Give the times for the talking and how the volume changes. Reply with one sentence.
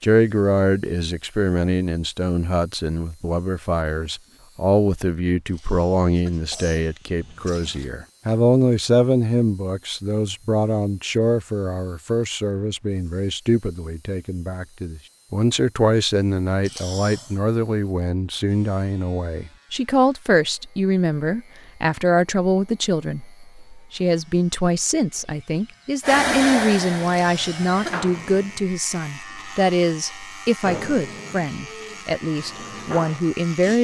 You can hear the talking from 0.0 to 33.7 s, at a steady volume.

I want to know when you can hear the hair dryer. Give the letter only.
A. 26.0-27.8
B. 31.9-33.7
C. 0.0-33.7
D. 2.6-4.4
A.